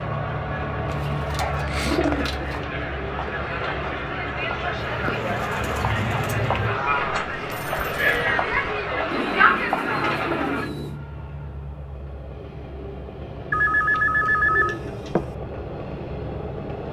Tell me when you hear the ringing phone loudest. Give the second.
14 s.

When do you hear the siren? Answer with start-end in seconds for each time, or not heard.
not heard.